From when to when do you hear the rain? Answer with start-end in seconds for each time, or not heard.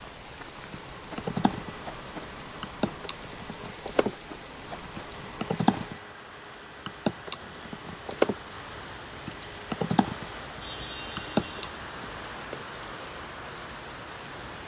0.0-14.6.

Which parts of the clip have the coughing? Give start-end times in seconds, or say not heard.
not heard.